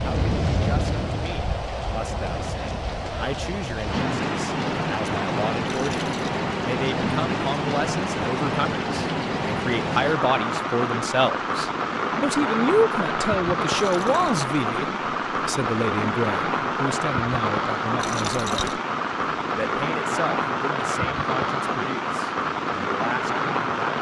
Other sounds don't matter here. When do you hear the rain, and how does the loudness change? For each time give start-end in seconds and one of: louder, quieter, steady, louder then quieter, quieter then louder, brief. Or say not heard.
0.0-23.9 steady.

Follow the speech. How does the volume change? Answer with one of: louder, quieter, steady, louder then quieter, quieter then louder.
louder then quieter.